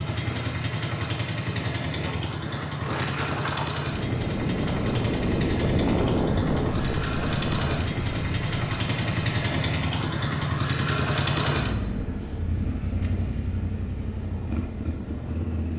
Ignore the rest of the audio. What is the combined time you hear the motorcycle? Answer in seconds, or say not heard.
16 s.